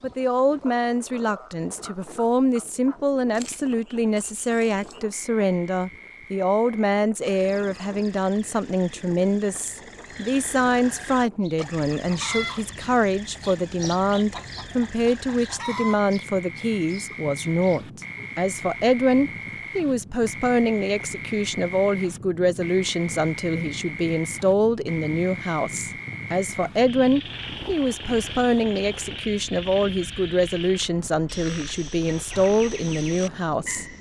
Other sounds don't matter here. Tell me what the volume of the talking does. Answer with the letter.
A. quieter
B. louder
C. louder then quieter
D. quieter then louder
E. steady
E.